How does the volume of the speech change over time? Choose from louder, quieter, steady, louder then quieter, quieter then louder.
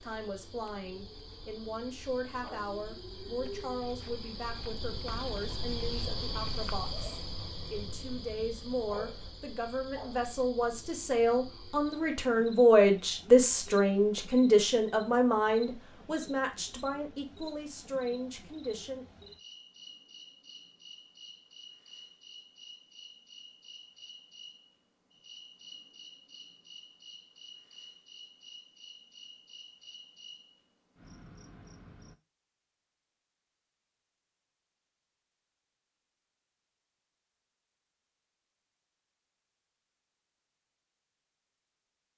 louder then quieter.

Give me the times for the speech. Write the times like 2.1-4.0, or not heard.
0.0-19.1.